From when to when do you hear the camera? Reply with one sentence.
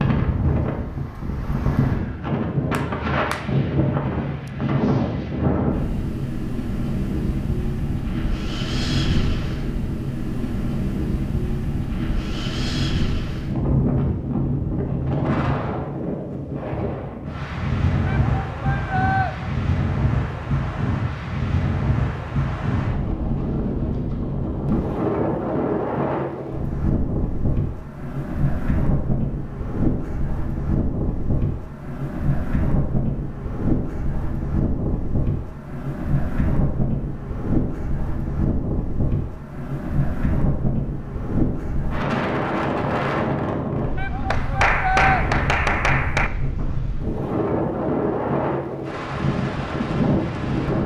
The camera can't be heard in this clip.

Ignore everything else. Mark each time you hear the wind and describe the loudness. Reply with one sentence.
You can hear the wind from 0.0 to 50.8 s, at a steady volume.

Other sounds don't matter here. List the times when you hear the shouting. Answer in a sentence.
The shouting can be heard from 18.1 to 19.4 s and from 44.0 to 45.2 s.